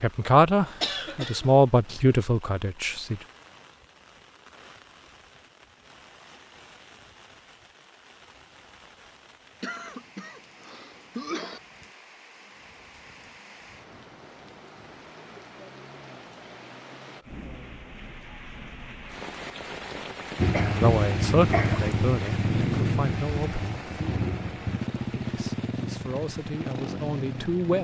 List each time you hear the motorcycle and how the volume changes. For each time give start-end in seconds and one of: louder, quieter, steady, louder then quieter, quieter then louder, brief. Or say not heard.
20.4-27.7 quieter.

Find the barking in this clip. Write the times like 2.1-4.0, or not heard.
not heard.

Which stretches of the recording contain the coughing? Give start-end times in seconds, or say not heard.
0.8-2.0, 9.6-11.6, 20.5-21.9.